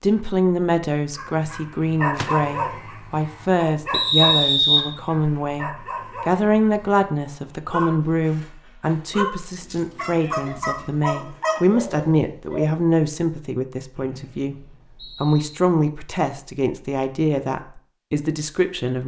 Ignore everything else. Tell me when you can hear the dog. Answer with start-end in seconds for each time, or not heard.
1.1-12.7.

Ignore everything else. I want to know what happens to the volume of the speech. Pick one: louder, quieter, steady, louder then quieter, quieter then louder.
steady.